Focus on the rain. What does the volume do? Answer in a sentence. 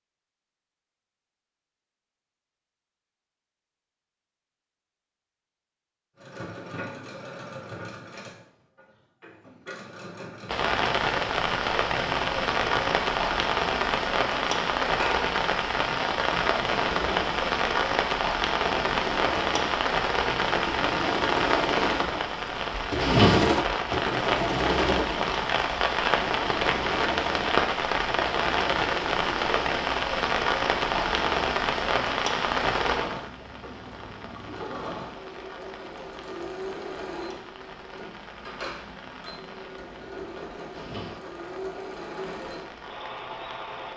The volume of the rain goes down.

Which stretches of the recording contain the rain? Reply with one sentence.
The rain can be heard from 10.4 to 43.9 s.